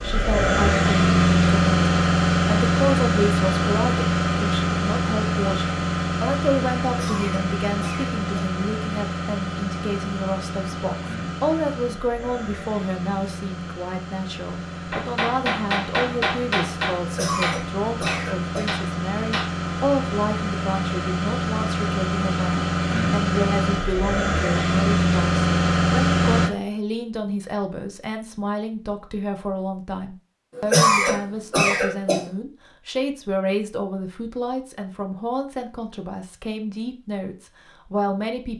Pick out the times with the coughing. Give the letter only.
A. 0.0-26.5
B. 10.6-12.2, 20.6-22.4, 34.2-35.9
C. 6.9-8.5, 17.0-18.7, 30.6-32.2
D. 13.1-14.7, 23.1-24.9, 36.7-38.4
C.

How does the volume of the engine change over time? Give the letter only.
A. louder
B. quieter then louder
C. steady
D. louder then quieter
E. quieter
B.